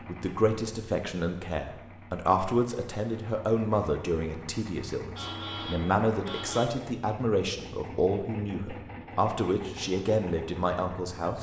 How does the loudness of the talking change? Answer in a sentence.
The loudness of the talking stays about the same.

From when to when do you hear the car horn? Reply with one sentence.
You can hear the car horn from 5.2 to 6.7 s.